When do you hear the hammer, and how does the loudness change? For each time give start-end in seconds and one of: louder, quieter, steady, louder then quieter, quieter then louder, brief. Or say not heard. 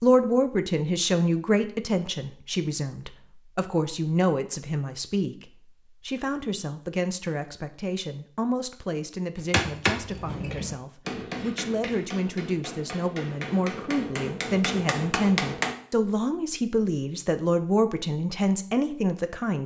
9.3-15.8 quieter then louder.